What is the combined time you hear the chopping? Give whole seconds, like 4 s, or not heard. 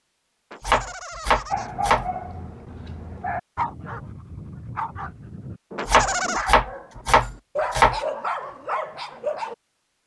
4 s.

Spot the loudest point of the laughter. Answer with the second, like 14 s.
6 s.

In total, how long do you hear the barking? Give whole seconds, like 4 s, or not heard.
8 s.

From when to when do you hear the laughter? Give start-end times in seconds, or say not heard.
0.5-1.7, 5.8-6.5.